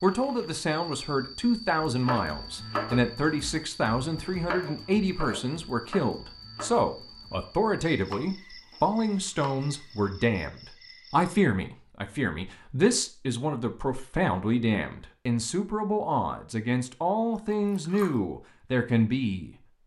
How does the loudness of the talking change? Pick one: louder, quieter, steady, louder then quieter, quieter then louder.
steady.